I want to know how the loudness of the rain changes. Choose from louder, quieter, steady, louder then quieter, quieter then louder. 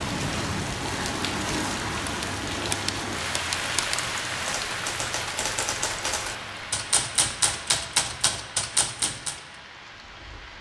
quieter.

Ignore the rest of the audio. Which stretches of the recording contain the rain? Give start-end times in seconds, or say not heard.
0.0-10.5.